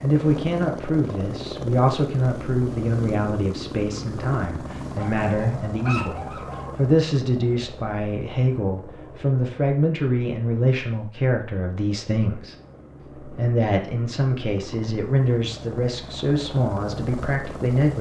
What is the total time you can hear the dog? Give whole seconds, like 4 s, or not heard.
2 s.